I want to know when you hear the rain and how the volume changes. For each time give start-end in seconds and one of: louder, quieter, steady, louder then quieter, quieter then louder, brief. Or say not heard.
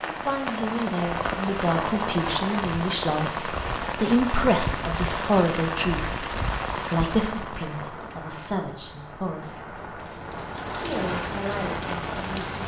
0.0-12.6 quieter then louder.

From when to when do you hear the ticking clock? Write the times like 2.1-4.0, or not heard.
not heard.